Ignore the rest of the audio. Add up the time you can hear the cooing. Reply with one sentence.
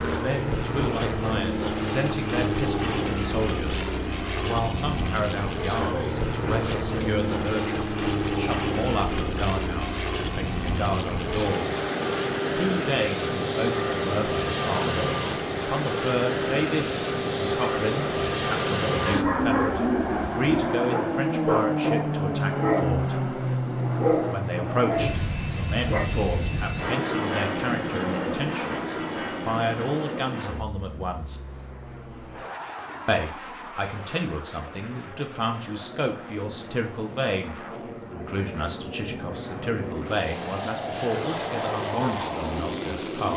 You can hear the cooing for 2 seconds altogether.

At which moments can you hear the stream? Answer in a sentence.
The stream can't be heard in this clip.